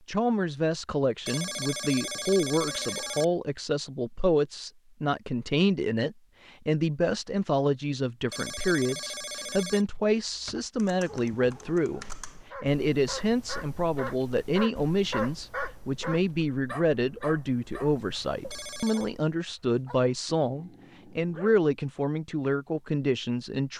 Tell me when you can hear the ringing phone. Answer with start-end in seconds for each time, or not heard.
1.2-3.2, 8.3-9.8, 18.5-19.1.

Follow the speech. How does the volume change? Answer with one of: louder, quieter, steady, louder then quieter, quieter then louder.
steady.